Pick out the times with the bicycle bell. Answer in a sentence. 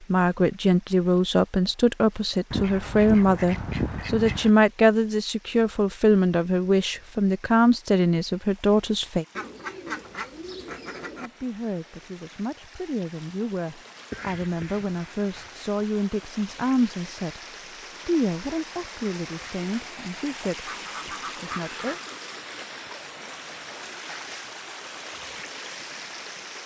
You can't hear the bicycle bell here.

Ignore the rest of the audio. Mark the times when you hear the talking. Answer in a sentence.
The talking can be heard from 0.1 to 9.2 s, from 11.2 to 17.4 s and from 18.1 to 22.0 s.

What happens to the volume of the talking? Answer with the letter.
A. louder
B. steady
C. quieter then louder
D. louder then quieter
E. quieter
E.